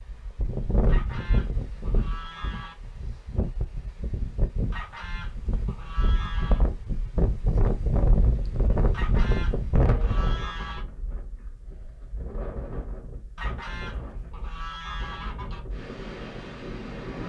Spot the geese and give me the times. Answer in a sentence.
You can hear the geese from 0.8 to 2.8 s, from 4.7 to 6.7 s, from 8.9 to 10.8 s and from 13.3 to 15.7 s.